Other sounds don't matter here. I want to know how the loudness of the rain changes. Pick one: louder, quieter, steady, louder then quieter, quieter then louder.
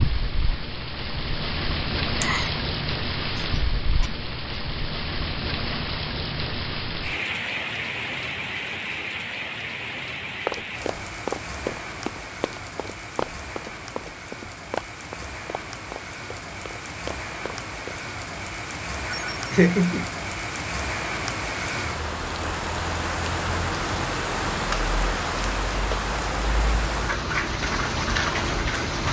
quieter then louder.